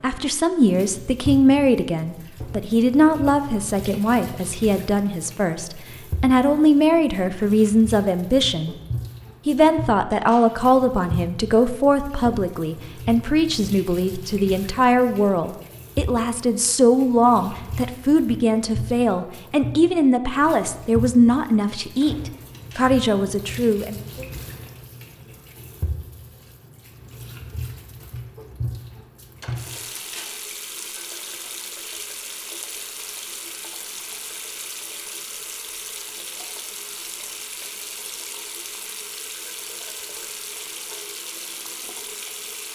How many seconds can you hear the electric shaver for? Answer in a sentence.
You can't hear the electric shaver here.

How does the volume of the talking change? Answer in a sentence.
The volume of the talking stays about the same.